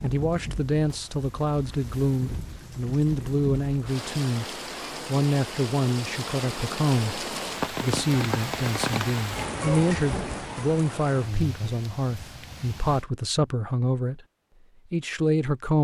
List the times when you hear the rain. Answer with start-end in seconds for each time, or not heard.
0.0-13.1.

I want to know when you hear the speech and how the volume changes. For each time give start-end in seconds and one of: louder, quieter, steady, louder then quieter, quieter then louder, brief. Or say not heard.
0.0-4.5 steady
5.0-14.2 steady
14.9-15.8 brief.